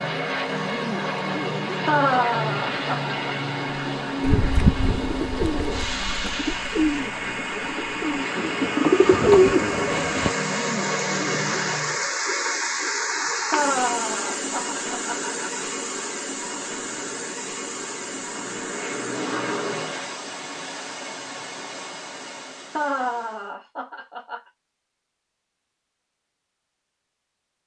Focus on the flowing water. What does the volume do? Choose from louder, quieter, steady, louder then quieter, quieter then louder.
louder then quieter.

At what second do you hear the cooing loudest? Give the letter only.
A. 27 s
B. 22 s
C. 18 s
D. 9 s
D.